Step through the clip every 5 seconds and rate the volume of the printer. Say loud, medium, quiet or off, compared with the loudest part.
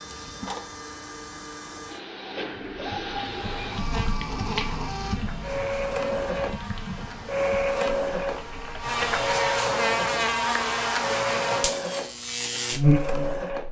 medium, loud, loud.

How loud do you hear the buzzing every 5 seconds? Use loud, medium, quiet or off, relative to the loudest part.
quiet, medium, loud.